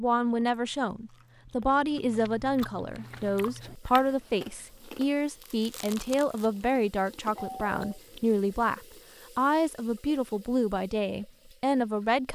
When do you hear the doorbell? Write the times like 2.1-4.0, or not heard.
7.3-8.0.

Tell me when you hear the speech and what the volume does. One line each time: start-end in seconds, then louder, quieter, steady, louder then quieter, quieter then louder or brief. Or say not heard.
0.0-12.3 steady.